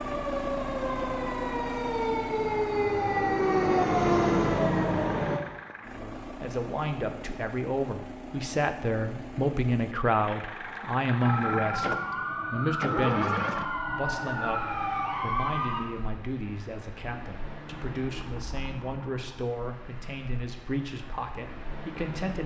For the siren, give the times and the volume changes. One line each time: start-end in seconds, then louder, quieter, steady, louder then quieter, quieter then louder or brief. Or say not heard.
0.0-5.5 louder
11.2-15.9 steady.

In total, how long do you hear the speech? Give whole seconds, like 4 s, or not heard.
16 s.